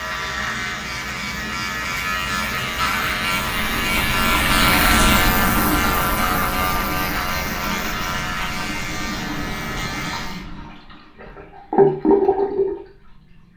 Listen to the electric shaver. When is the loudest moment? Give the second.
5 s.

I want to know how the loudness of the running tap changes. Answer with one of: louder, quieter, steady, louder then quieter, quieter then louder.
quieter then louder.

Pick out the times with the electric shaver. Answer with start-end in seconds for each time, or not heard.
0.0-10.4.